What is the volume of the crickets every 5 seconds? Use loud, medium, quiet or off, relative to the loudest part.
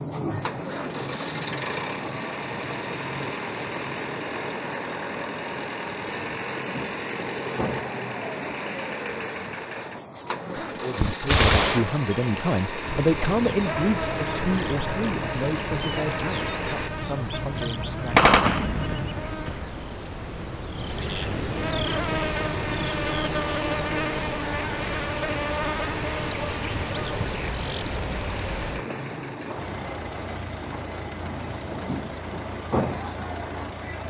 medium, medium, medium, medium, loud, loud, loud.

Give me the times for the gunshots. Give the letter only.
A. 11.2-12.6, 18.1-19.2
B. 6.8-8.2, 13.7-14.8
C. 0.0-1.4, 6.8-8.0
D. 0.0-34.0
A.